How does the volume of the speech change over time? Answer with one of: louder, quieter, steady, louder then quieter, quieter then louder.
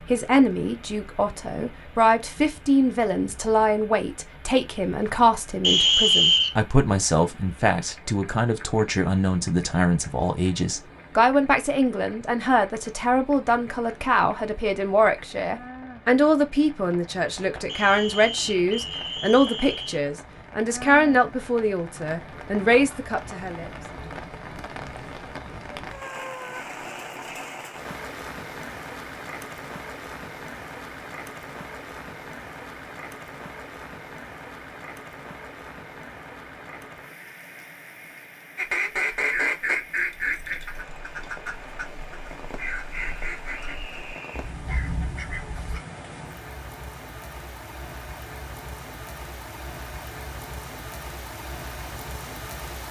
steady.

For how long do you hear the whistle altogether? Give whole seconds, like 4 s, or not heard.
5 s.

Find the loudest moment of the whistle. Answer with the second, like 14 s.
6 s.